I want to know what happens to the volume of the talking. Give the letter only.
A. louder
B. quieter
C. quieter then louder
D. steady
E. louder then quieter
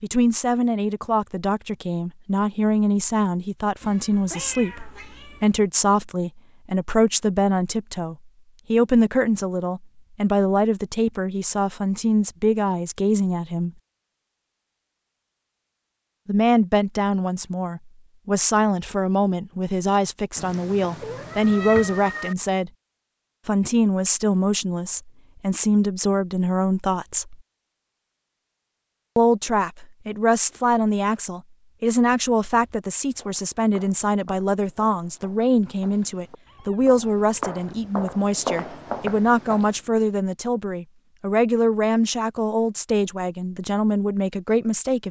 D.